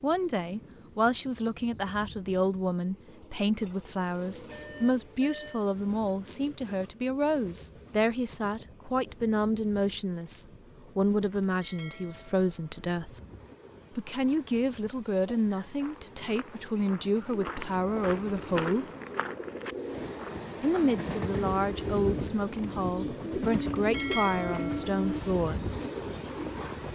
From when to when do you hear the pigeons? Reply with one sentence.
You can hear the pigeons from 17.3 to 26.7 s.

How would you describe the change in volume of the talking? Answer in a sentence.
The loudness of the talking stays about the same.